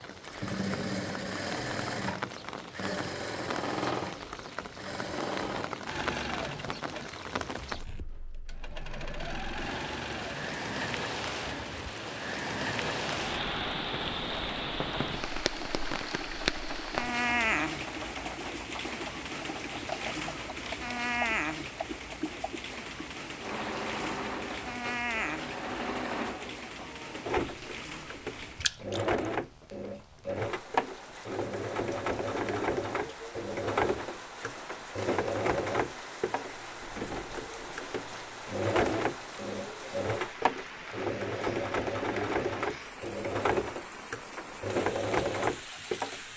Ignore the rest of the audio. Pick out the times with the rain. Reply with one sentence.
You can hear the rain from 0.0 to 46.3 s.